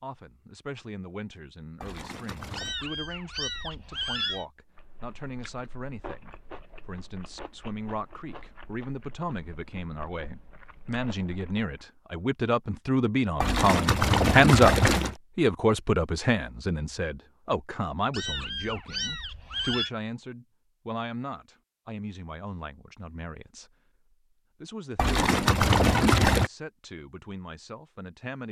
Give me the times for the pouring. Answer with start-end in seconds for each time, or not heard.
1.8-2.8, 13.4-15.2, 24.9-26.5.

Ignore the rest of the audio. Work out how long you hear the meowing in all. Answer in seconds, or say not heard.
4 s.